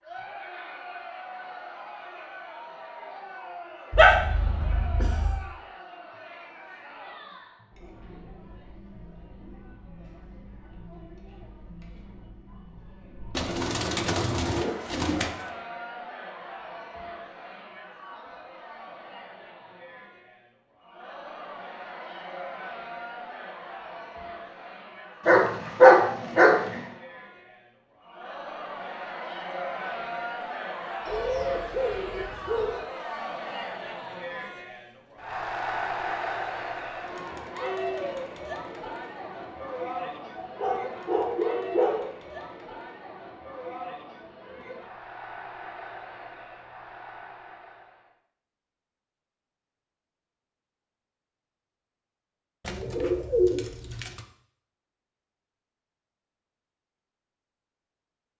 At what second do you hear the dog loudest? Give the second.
26 s.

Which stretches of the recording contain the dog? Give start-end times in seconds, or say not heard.
3.9-5.4, 25.2-26.8, 40.4-42.0.